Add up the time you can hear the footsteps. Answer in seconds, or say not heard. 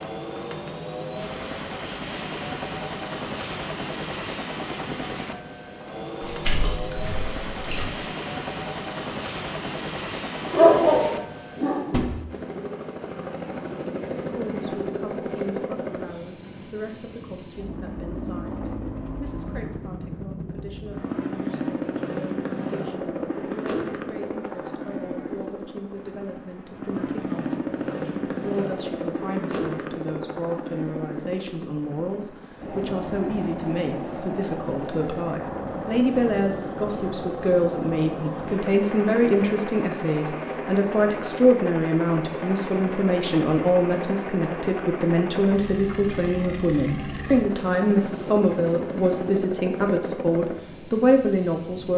not heard.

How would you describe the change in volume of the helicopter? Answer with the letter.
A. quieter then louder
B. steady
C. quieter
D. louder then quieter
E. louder
B.